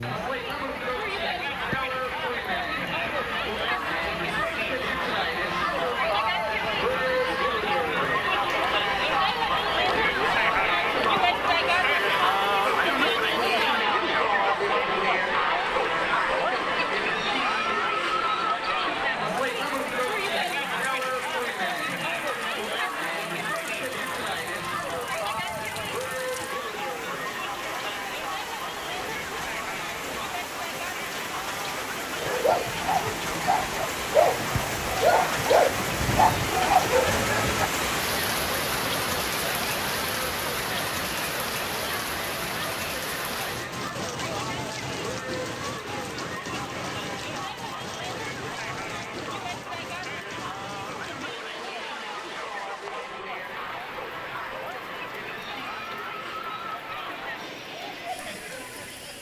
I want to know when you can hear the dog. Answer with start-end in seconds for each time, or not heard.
32.2-37.7.